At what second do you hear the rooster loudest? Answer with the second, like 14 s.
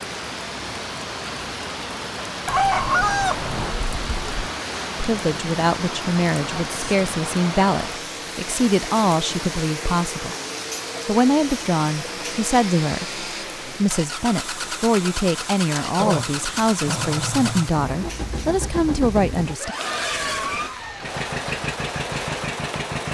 3 s.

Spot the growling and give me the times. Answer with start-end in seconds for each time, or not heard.
15.9-17.7.